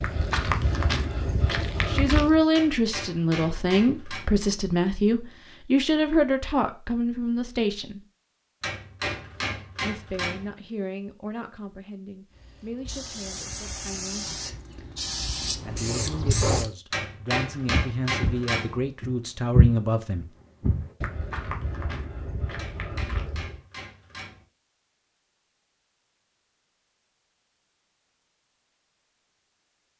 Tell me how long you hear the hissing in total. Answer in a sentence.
The hissing can be heard for 4 seconds in total.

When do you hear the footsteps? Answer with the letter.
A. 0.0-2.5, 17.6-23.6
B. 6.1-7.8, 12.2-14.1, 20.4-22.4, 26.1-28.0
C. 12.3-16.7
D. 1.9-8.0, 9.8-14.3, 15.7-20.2
A.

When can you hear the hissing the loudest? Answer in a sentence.
The volume of the hissing peaks at 16 seconds.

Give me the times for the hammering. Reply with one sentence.
The hammering can be heard from 2.5 to 4.2 s, from 8.6 to 10.5 s, from 16.9 to 18.8 s and from 22.6 to 24.4 s.